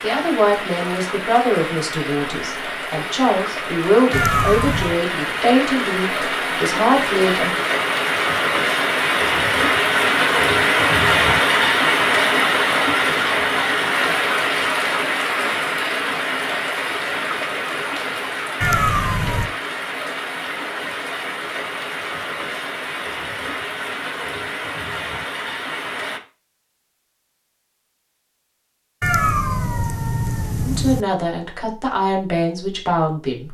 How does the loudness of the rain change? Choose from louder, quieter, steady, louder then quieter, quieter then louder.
louder then quieter.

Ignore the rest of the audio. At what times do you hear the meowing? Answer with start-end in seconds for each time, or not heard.
4.1-5.0, 18.6-19.5, 29.0-31.1.